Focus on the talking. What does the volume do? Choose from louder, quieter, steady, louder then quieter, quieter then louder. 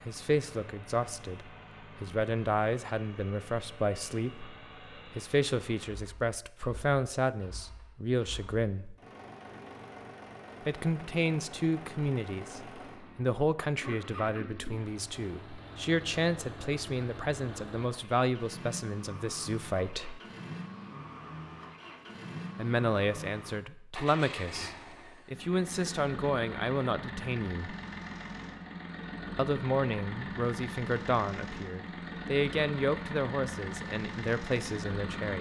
steady.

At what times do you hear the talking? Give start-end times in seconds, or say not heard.
0.0-8.9, 10.7-20.2, 22.6-27.8, 29.4-35.3.